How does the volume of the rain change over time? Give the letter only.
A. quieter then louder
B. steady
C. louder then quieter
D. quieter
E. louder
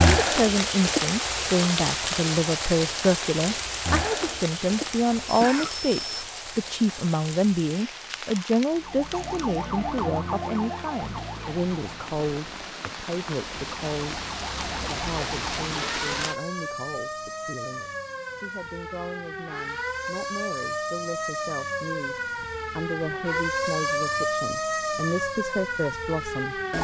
A.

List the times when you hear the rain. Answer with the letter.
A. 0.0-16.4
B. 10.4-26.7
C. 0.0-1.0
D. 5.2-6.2
A.